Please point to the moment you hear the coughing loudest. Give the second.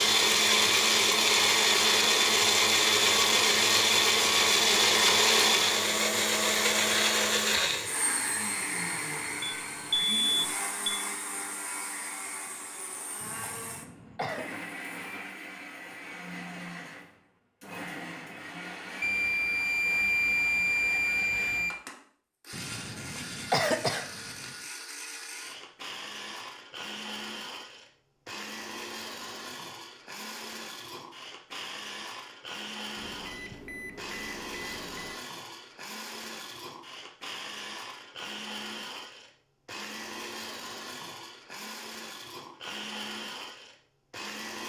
24 s.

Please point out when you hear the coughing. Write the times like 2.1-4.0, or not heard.
13.2-14.4, 22.5-24.5.